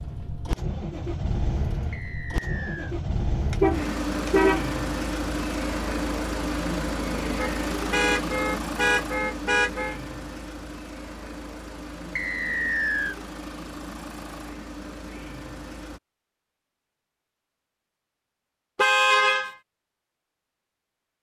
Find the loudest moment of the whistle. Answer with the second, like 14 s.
13 s.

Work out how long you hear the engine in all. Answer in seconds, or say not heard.
16 s.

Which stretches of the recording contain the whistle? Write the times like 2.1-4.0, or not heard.
1.9-3.0, 12.2-13.2.